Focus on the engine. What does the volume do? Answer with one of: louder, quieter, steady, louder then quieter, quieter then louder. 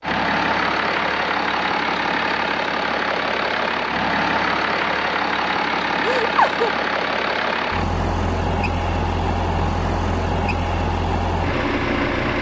steady.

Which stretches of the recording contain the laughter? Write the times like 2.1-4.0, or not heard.
6.0-6.7.